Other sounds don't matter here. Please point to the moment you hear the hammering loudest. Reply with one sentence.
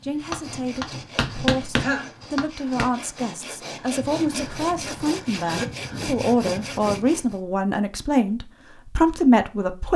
The loudest moment of the hammering is at 2 seconds.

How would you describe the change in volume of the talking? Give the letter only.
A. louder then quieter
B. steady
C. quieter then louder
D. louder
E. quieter
D.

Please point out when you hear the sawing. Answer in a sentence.
The sawing can be heard from 0.0 to 7.4 s.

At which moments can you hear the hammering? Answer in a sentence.
The hammering can be heard from 0.3 to 2.9 s.